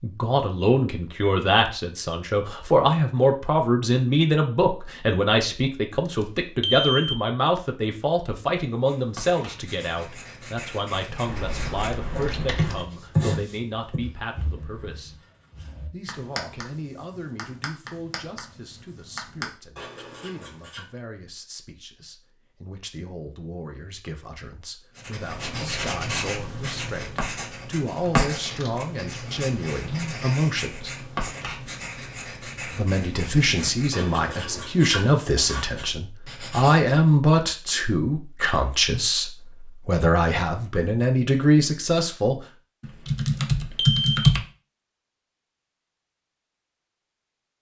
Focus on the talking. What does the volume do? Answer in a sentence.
The loudness of the talking goes down, then up.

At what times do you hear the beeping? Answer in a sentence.
The beeping can be heard from 6.6 to 7.2 s and from 43.8 to 44.3 s.